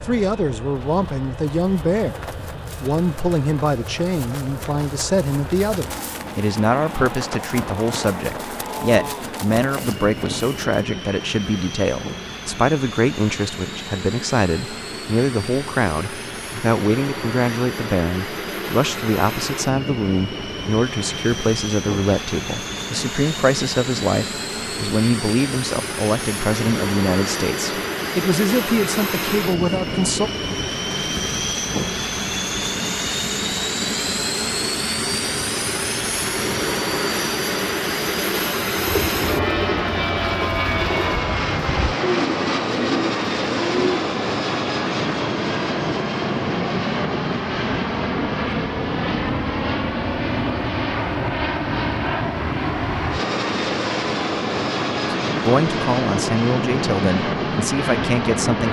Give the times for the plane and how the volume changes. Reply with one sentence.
You can hear the plane from 0.0 to 58.6 s, getting louder.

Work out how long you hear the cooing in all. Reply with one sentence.
The cooing can be heard for 5 seconds in total.